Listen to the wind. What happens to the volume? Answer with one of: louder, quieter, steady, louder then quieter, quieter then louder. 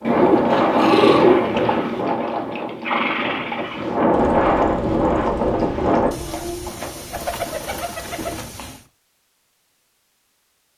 quieter then louder.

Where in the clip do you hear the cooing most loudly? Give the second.
1 s.